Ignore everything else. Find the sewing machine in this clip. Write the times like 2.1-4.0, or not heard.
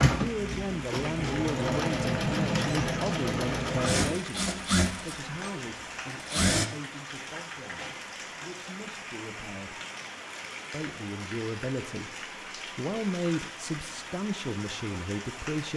0.0-6.7.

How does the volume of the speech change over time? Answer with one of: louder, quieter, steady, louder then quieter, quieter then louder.
quieter then louder.